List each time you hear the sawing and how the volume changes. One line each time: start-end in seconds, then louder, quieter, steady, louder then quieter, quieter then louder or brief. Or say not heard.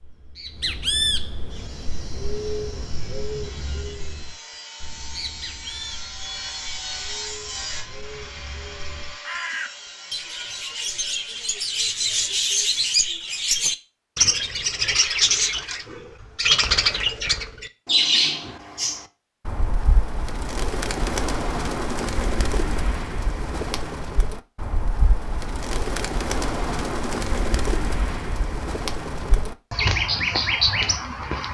1.4-13.0 louder then quieter.